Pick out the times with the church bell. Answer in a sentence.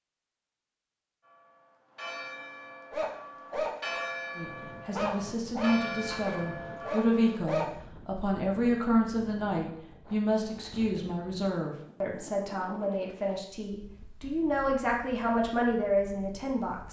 The church bell can be heard from 1.2 to 7.4 s.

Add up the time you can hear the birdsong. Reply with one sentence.
You can't hear the birdsong here.